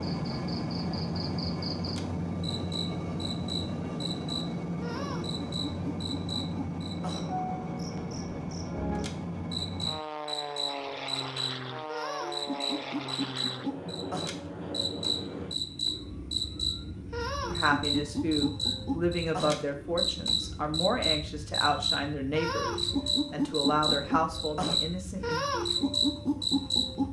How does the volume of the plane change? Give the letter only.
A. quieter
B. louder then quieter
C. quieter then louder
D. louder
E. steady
A.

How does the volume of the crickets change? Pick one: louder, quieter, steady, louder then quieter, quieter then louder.
louder.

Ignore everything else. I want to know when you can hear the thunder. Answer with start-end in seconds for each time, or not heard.
not heard.